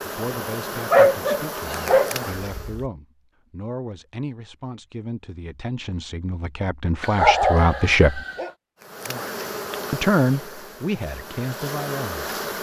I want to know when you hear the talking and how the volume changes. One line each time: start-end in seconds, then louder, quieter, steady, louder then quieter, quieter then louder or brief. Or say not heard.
0.0-8.2 louder
9.9-12.3 brief.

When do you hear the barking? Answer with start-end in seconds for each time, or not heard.
0.9-2.8, 7.0-8.5.